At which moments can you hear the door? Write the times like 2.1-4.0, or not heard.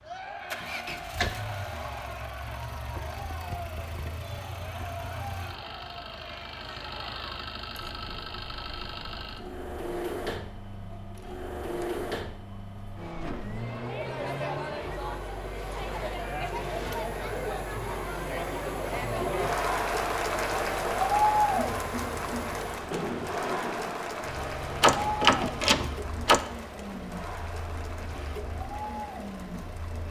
0.6-1.3, 15.6-17.1, 24.8-26.4.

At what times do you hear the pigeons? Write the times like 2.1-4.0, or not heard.
not heard.